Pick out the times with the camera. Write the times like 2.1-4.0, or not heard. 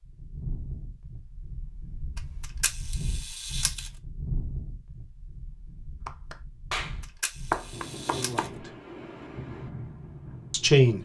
2.1-3.9, 7.0-8.5.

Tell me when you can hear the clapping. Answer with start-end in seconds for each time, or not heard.
6.0-8.5.